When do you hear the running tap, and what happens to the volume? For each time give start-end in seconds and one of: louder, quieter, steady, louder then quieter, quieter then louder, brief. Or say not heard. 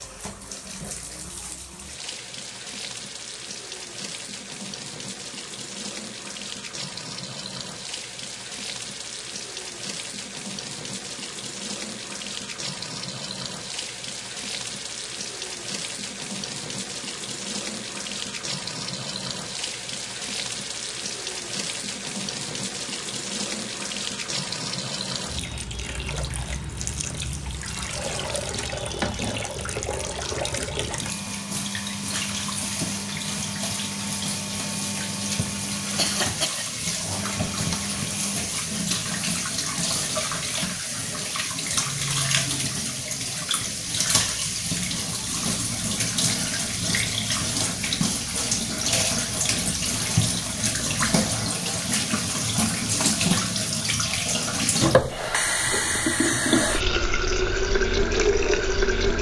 0.0-59.1 louder.